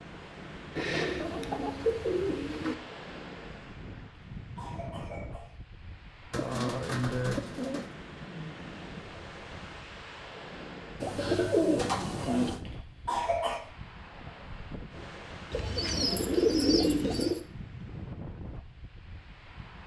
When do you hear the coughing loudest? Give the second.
13 s.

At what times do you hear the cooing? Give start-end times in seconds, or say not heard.
0.8-2.8, 6.3-7.9, 11.0-12.6, 15.5-17.4.